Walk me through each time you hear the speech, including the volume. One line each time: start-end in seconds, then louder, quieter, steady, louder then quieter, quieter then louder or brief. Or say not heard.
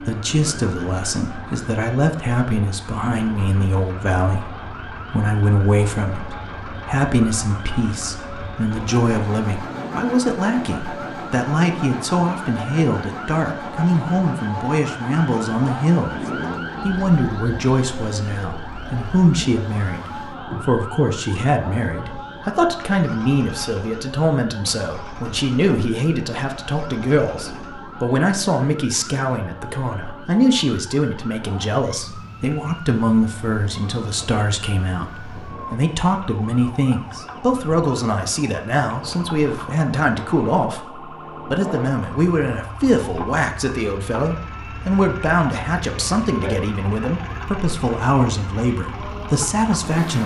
0.0-16.2 steady
16.8-50.2 steady.